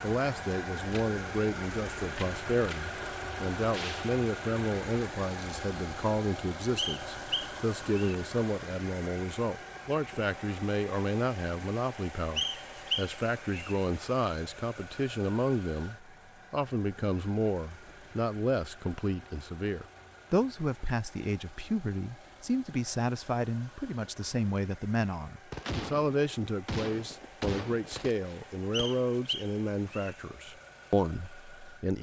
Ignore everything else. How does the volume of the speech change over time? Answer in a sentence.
The loudness of the speech stays about the same.